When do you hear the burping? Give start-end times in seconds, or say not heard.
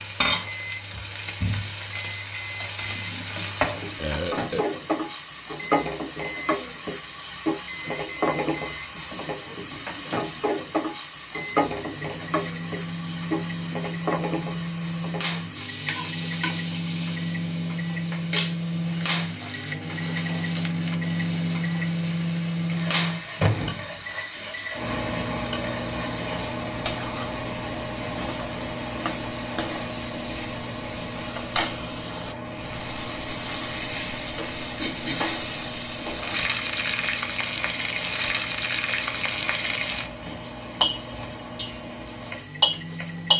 4.0-4.7.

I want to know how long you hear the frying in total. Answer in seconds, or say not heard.
43 s.